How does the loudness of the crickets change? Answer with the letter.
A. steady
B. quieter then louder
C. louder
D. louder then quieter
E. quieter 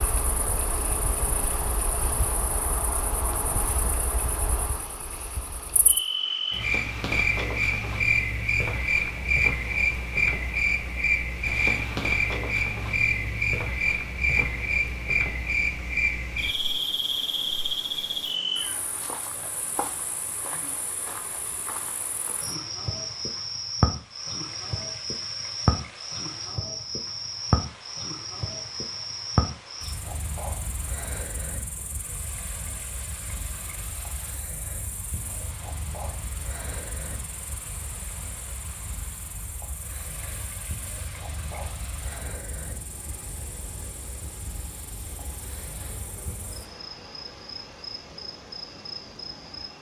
E.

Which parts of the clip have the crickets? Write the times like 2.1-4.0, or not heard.
0.0-49.7.